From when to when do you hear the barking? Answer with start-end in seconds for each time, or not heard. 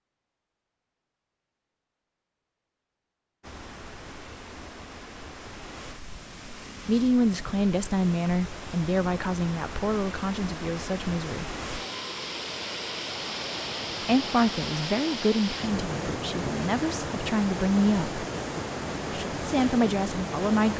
not heard.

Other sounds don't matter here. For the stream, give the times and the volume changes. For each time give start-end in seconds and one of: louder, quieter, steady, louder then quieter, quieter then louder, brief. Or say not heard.
3.4-20.7 louder.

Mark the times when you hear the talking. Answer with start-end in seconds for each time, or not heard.
6.8-11.4, 14.0-18.2, 19.1-20.7.